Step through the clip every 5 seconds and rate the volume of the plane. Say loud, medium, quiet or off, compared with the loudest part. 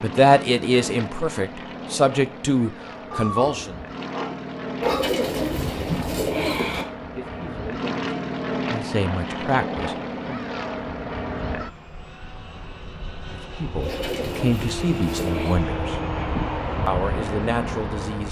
medium, loud, medium, loud.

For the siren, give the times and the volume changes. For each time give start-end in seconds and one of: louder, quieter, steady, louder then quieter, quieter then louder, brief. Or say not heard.
not heard.